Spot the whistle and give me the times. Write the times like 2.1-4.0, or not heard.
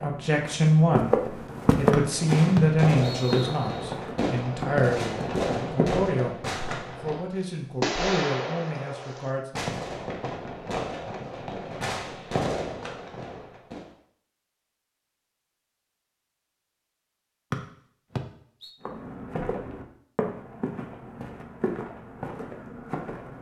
1.9-3.9, 17.5-18.7.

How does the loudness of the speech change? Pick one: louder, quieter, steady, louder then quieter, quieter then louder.
quieter.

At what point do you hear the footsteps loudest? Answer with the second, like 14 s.
2 s.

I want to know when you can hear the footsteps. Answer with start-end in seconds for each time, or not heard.
0.0-6.1, 18.8-23.3.